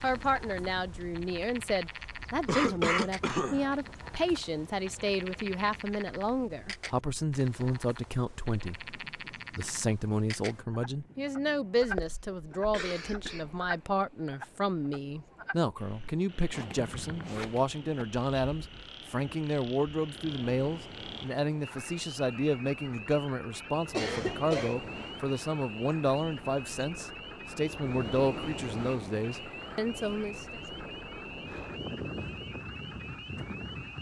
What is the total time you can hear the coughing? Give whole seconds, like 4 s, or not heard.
4 s.